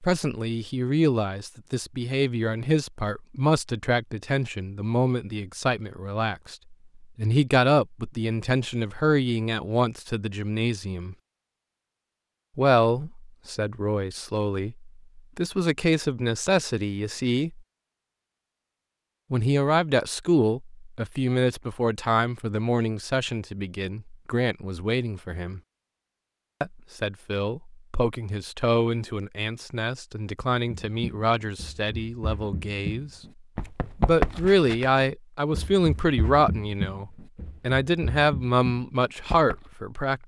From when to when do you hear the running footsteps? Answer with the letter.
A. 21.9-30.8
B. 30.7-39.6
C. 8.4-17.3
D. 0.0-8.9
B.